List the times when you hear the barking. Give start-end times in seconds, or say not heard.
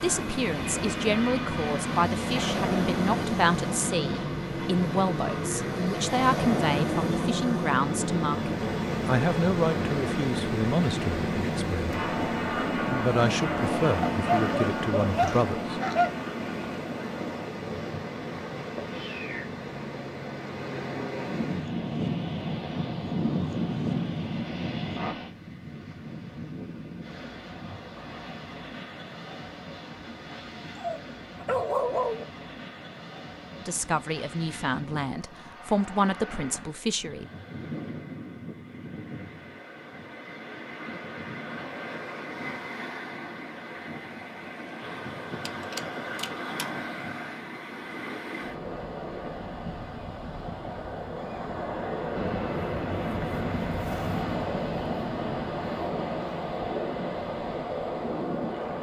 14.1-16.1, 30.8-32.2, 45.5-46.6.